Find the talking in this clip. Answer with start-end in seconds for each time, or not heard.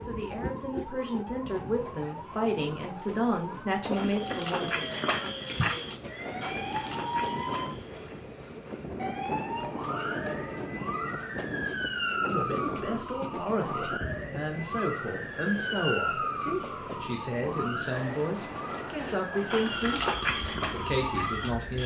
0.0-5.0, 12.2-20.1, 20.7-21.8.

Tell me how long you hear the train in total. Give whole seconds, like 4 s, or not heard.
22 s.